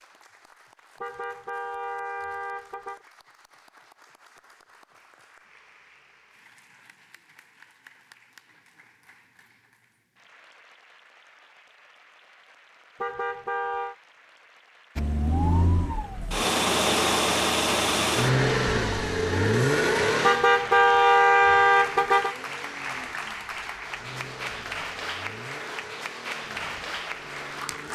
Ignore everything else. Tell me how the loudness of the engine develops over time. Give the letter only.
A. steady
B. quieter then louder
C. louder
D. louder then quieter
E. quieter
E.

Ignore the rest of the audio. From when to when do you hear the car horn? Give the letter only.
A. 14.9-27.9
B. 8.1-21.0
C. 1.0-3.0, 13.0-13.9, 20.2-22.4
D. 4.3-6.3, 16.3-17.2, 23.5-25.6
C.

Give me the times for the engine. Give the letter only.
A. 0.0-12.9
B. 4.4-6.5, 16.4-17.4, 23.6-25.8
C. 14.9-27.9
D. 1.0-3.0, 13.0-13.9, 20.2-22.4
C.